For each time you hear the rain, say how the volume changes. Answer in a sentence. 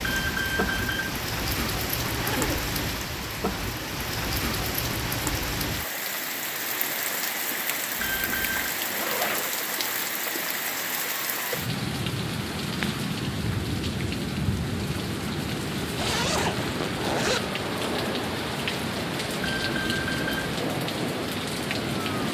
The rain can be heard from 0.0 to 22.2 s, at a steady volume.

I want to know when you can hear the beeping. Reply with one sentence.
The beeping can be heard from 0.0 to 1.2 s, from 8.0 to 8.8 s and from 19.4 to 20.6 s.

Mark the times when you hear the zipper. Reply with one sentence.
The zipper can be heard from 2.0 to 2.6 s, from 8.6 to 9.6 s and from 15.9 to 17.4 s.